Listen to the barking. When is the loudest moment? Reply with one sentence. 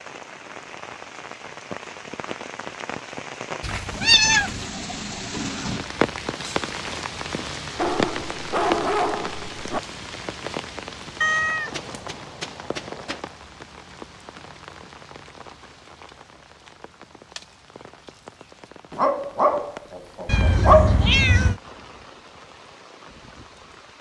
The loudest moment of the barking is at 21 seconds.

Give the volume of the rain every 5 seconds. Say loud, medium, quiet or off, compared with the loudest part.
medium, loud, medium, quiet, quiet.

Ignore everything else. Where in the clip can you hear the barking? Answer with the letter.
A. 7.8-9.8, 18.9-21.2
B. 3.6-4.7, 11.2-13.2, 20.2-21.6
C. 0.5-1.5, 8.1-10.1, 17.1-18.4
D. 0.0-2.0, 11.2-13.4
A.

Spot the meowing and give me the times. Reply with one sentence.
You can hear the meowing from 3.6 to 4.7 s, from 11.2 to 13.2 s and from 20.2 to 21.6 s.